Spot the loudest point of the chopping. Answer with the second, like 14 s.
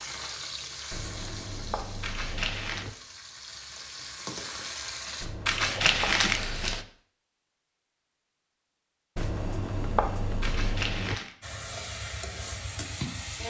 10 s.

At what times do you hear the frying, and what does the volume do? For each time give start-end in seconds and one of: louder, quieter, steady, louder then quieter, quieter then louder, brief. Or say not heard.
0.0-5.3 quieter then louder
11.4-13.4 brief.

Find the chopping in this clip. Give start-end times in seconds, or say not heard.
0.9-3.0, 5.2-6.8, 9.2-11.2.